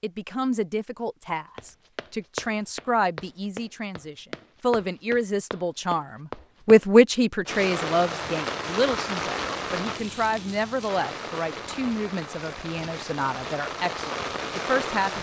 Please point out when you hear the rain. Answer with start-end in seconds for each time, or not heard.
7.5-15.1.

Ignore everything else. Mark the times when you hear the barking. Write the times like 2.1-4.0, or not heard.
not heard.